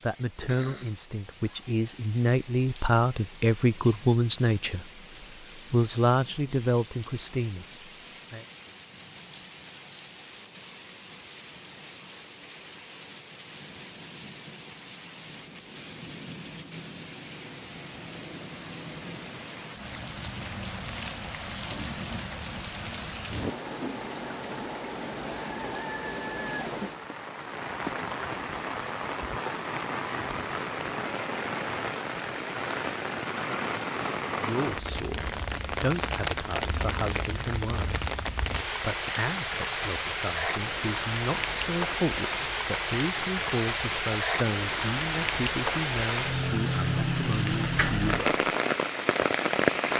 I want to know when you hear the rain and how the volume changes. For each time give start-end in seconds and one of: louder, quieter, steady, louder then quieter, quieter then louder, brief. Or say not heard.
0.0-49.9 louder.